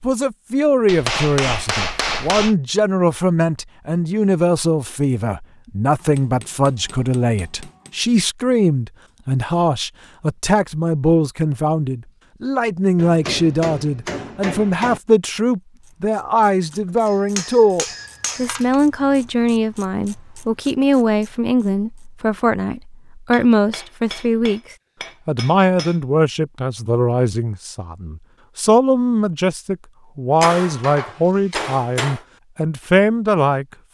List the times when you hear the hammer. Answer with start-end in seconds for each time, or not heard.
0.8-2.5, 6.0-7.9, 12.9-15.0, 17.1-18.8, 23.3-26.0, 30.4-32.2.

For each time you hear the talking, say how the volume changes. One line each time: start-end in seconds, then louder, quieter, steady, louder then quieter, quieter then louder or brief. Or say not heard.
0.0-33.9 steady.